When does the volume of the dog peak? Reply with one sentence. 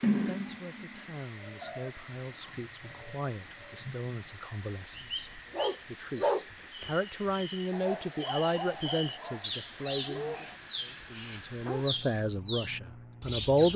The volume of the dog peaks at 6 seconds.